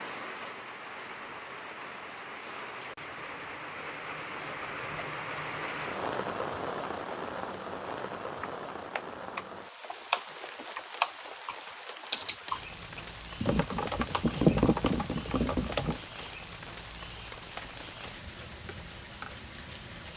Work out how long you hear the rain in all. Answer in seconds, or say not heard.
20 s.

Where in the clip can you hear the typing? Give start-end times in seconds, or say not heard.
7.3-15.9.